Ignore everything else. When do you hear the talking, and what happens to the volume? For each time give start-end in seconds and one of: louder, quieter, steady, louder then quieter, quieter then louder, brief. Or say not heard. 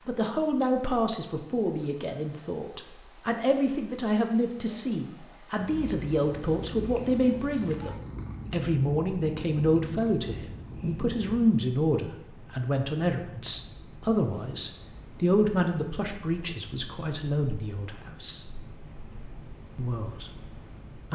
0.1-18.4 steady
19.8-21.1 brief.